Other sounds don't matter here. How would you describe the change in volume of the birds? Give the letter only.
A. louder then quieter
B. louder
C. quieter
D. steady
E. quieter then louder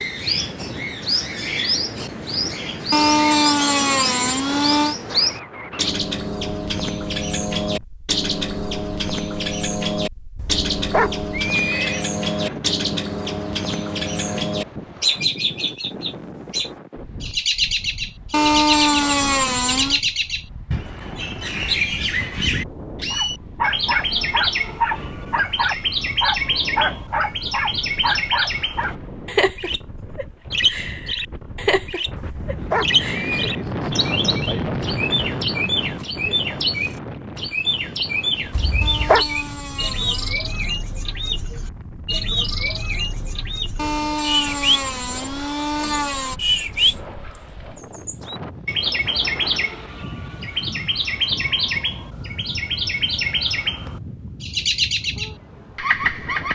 D.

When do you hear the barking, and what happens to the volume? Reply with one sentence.
The barking can be heard from 23.1 to 28.9 s, at a steady volume.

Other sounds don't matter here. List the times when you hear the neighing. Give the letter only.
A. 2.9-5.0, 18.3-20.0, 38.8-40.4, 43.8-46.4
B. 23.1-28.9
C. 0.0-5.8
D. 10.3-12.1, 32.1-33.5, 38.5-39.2
D.